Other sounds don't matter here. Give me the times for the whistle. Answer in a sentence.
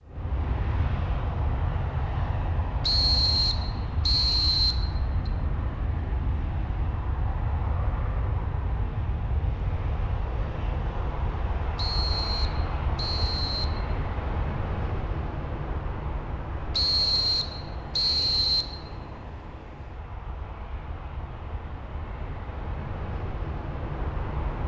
You can hear the whistle from 2.8 to 5.3 s, from 11.8 to 13.8 s and from 16.7 to 18.6 s.